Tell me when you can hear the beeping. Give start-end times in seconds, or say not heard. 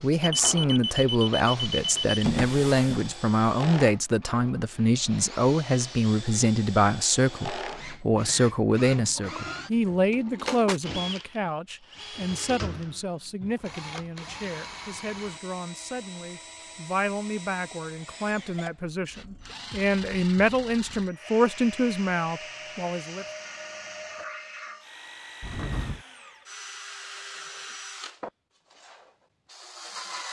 0.2-2.2.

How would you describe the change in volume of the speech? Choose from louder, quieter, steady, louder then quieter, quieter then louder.
quieter then louder.